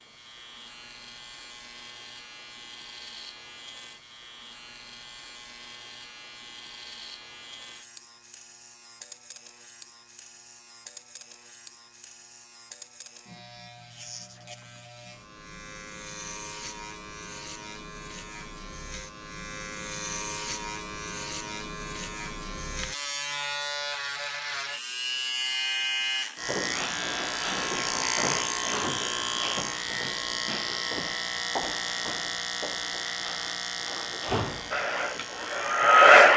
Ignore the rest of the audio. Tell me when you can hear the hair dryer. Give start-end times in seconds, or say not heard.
34.7-36.3.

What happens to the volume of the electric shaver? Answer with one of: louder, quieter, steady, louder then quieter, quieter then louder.
louder.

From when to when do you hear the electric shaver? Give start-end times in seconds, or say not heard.
0.0-36.3.